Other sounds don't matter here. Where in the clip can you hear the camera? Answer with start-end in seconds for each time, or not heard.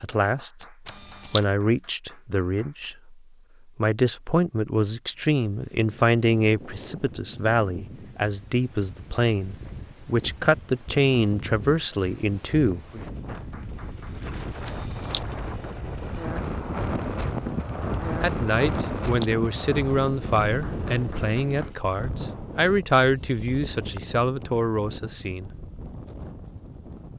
0.6-1.4, 14.4-15.2, 18.4-19.3.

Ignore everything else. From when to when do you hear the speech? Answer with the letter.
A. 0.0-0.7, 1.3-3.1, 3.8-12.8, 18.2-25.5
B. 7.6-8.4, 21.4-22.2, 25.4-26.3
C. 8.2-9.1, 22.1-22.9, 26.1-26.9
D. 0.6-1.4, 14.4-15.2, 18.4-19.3
A.